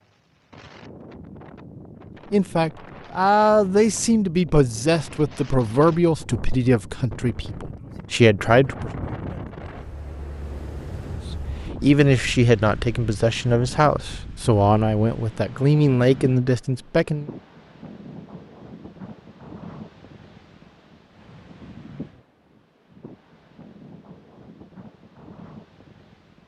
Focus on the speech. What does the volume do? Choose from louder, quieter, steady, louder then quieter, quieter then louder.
steady.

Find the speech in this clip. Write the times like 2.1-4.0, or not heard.
2.3-8.9, 11.3-17.2.